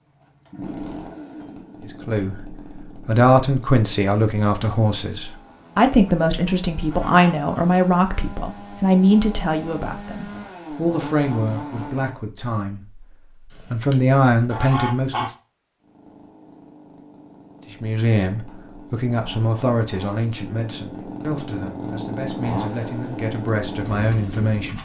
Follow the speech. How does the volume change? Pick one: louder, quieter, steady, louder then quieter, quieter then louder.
quieter.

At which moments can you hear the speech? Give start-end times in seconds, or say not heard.
1.8-15.2, 17.7-24.8.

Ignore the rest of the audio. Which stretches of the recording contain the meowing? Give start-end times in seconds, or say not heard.
not heard.